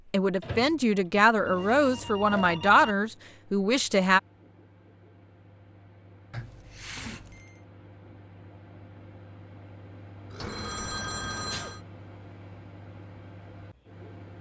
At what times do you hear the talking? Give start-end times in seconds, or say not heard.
0.1-4.2.